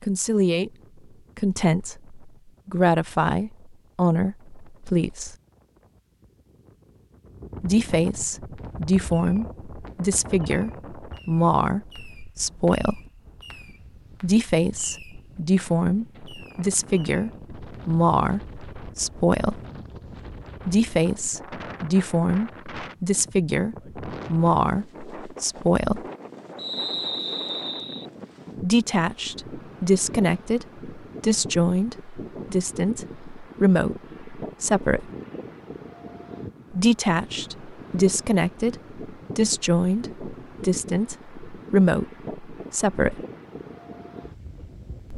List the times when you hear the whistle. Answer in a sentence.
The whistle can be heard from 26.6 to 28.1 s.